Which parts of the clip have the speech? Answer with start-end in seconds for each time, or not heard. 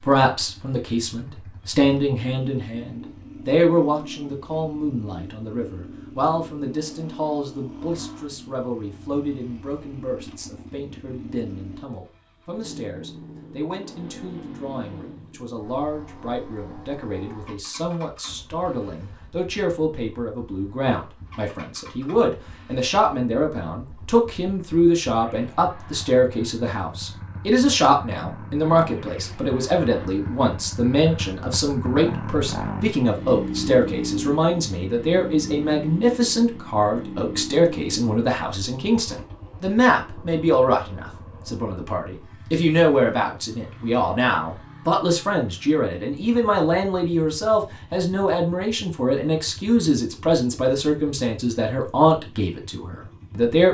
0.0-53.6.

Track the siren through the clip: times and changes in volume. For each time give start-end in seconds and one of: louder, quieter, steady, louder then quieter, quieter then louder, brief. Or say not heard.
not heard.